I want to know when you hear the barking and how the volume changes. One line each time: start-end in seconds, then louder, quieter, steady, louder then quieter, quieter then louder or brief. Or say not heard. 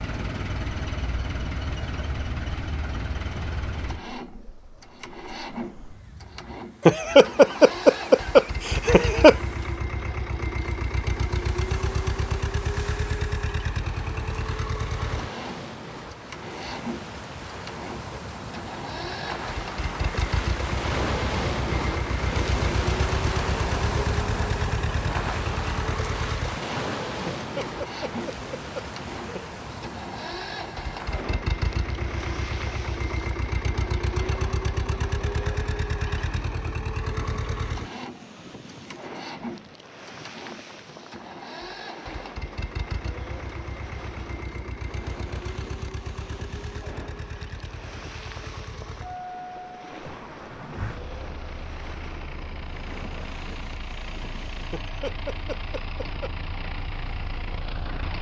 not heard.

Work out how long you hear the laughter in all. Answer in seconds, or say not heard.
6 s.